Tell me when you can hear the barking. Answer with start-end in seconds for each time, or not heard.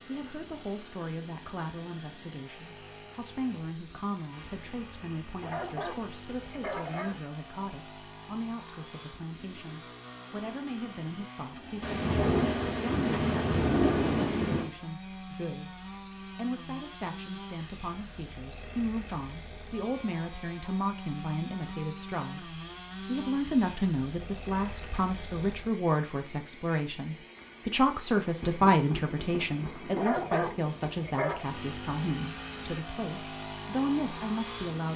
5.4-7.2, 29.9-31.5.